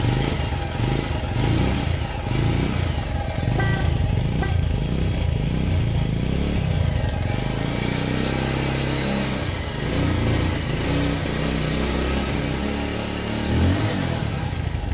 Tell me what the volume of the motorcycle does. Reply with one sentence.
The volume of the motorcycle stays about the same.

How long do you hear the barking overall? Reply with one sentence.
You can't hear the barking here.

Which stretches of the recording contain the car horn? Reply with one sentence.
The car horn can be heard from 3.5 to 4.5 s.